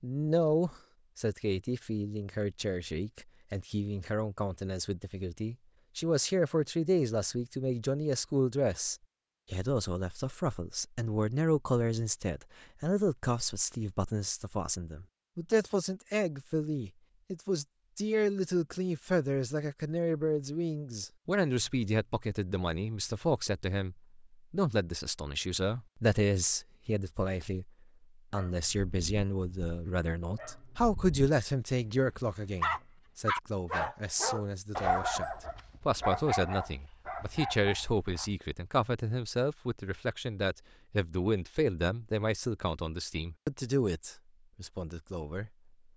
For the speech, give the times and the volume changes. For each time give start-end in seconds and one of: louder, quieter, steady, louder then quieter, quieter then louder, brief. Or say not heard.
0.0-45.5 steady.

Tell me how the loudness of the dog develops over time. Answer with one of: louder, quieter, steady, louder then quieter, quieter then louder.
louder then quieter.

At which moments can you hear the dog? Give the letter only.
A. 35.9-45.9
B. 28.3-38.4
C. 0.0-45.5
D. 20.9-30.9
B.